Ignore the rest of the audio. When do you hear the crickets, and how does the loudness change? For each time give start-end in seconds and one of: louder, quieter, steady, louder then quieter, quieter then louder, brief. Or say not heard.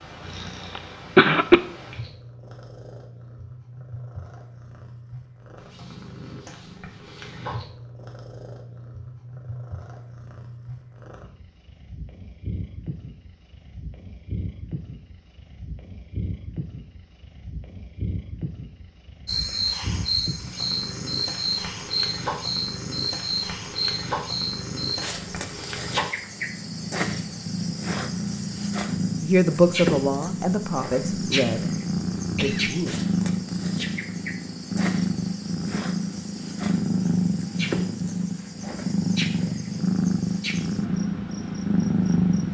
19.2-42.4 quieter.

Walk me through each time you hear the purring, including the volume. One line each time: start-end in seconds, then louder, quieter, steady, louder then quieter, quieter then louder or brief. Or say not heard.
0.0-42.4 louder.